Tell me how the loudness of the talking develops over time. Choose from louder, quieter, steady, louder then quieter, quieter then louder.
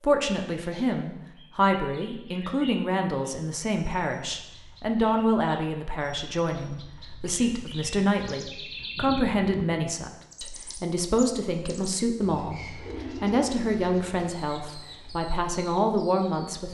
steady.